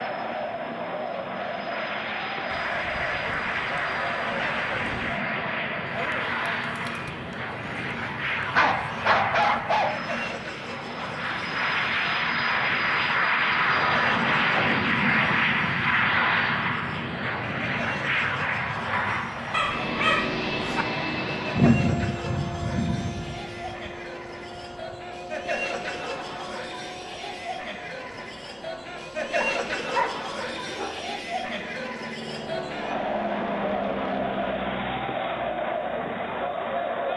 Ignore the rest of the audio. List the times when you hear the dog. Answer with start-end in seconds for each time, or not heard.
8.6-9.9, 19.5-20.9, 29.4-30.9.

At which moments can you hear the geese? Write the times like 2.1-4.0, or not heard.
2.5-5.2.